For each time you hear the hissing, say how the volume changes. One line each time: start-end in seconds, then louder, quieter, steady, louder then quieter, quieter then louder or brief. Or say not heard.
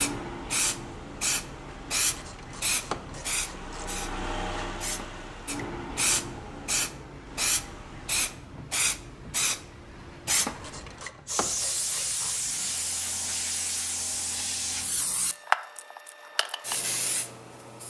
0.0-17.8 steady.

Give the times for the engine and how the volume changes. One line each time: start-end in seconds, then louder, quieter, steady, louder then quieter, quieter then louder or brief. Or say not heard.
0.2-8.4 louder then quieter.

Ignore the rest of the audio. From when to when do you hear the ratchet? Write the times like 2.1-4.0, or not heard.
2.0-3.9, 10.6-12.7.